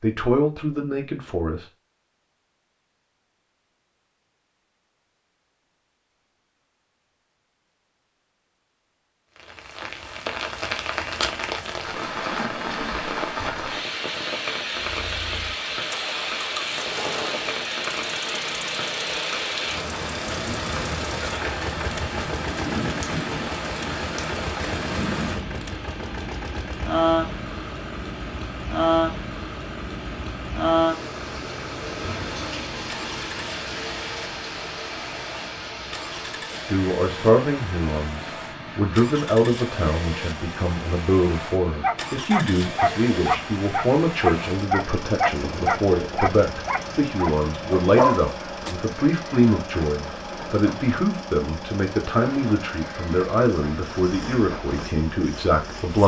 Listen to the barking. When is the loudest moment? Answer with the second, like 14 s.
48 s.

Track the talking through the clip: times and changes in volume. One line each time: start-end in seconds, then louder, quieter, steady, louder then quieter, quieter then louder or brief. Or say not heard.
0.0-1.6 brief
36.6-56.0 steady.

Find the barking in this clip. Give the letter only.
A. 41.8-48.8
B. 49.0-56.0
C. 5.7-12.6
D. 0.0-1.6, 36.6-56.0
A.